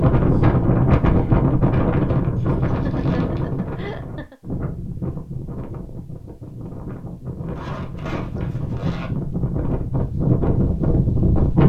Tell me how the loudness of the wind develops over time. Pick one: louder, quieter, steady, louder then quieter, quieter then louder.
quieter then louder.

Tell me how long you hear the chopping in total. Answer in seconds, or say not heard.
not heard.